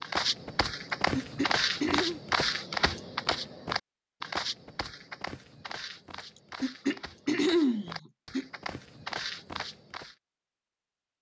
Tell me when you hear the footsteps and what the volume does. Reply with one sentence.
The footsteps can be heard from 0.0 to 10.2 s, getting quieter then louder.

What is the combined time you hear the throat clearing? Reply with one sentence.
You can hear the throat clearing for 3 seconds altogether.